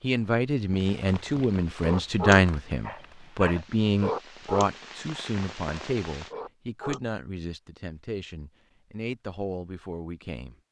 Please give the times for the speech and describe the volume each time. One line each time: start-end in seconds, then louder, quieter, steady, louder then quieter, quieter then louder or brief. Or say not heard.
0.0-10.6 quieter.